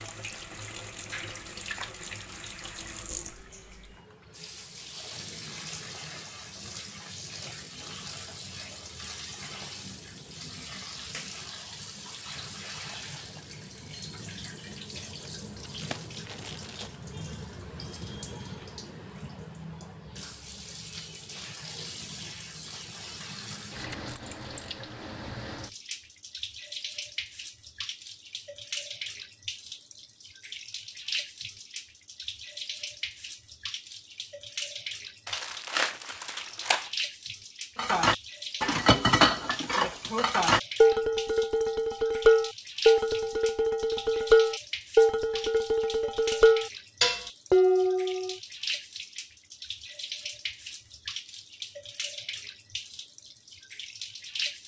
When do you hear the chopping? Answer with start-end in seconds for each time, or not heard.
not heard.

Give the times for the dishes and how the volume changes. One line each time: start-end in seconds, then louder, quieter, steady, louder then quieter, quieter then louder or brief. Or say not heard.
37.8-48.4 steady.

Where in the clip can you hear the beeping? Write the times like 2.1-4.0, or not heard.
not heard.